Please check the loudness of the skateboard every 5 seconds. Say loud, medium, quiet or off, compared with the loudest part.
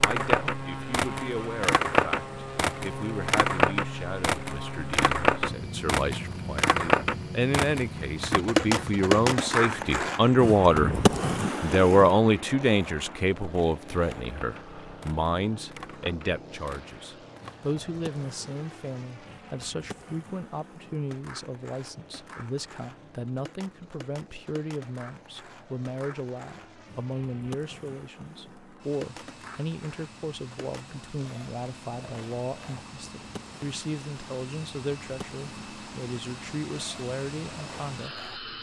loud, loud, medium, quiet, quiet, quiet, quiet, quiet.